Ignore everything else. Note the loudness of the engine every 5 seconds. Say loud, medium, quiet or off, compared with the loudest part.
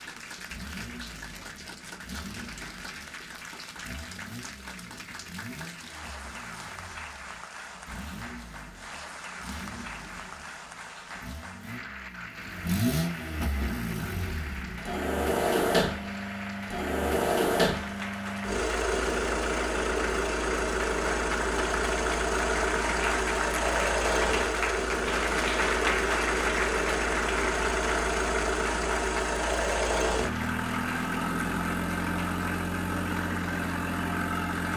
quiet, quiet, medium, loud, loud, loud, loud.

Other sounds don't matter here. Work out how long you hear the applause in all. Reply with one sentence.
The applause can be heard for 35 seconds in total.